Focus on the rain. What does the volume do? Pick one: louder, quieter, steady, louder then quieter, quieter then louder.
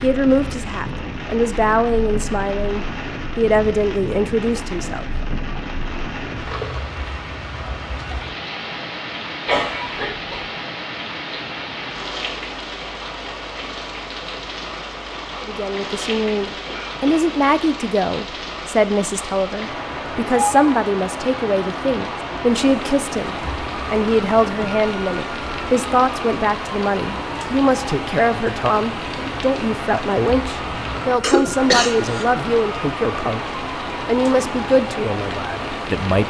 steady.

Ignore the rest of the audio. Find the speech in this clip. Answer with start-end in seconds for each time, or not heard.
0.0-5.0, 15.4-33.4, 34.0-36.2.